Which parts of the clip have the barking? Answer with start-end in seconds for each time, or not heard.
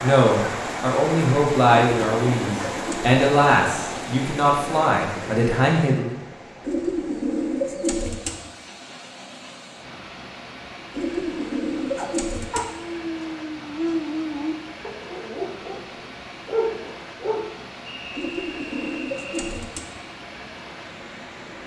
11.9-17.5.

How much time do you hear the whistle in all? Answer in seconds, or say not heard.
2 s.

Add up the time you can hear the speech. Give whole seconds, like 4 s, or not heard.
6 s.